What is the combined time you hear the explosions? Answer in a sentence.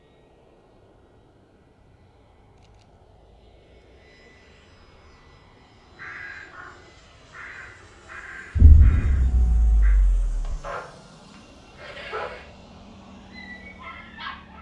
You can hear the explosions for 2 seconds altogether.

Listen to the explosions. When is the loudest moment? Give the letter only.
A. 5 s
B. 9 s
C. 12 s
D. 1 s
B.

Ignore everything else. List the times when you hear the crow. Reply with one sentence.
The crow can be heard from 5.9 to 9.9 s.